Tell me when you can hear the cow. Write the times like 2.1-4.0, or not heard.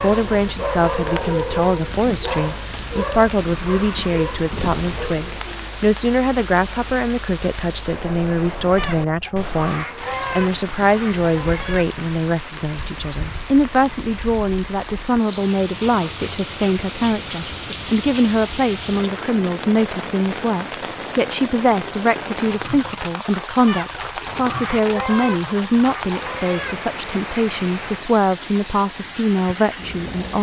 not heard.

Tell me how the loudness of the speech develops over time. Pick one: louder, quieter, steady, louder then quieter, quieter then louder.
steady.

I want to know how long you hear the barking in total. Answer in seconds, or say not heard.
5 s.